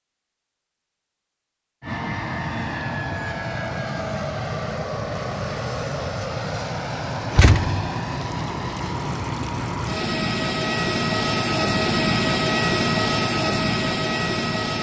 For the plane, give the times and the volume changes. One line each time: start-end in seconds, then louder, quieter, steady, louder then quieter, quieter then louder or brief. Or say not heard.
1.8-14.7 louder.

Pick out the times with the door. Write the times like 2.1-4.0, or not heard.
7.3-7.9.